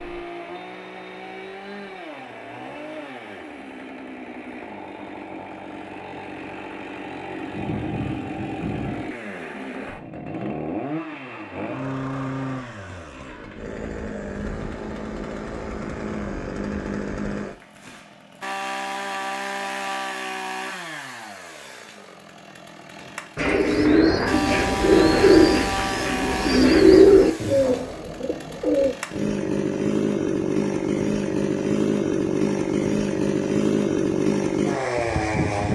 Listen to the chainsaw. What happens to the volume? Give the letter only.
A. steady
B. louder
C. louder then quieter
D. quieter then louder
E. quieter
B.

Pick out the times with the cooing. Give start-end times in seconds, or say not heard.
23.0-28.9.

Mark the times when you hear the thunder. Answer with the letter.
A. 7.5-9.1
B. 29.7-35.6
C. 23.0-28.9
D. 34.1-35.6
A.